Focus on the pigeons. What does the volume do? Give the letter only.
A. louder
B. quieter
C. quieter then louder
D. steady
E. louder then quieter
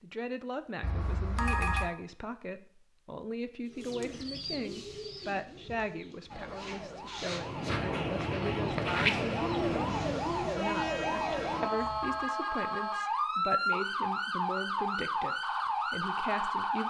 C.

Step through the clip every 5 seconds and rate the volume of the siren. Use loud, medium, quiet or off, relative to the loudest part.
off, medium, loud, loud.